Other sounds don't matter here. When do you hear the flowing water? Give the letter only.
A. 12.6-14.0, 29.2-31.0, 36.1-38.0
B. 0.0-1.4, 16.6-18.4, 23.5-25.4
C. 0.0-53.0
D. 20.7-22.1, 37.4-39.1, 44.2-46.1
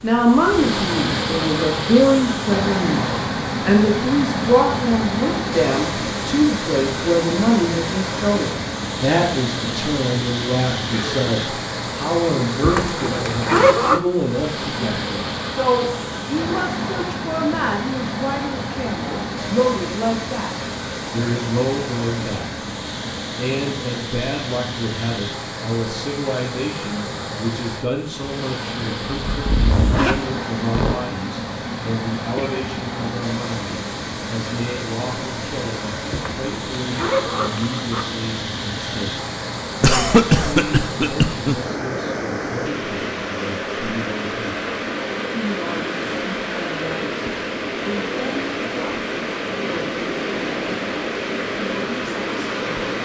C.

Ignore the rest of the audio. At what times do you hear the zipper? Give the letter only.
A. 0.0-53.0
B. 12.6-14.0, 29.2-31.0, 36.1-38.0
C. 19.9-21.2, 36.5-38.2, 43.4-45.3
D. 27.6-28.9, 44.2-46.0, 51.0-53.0
B.